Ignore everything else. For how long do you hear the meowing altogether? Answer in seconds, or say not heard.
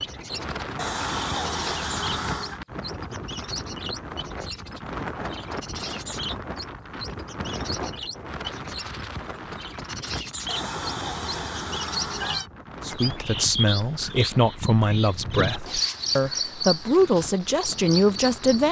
4 s.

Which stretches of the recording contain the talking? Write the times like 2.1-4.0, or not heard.
12.8-18.6.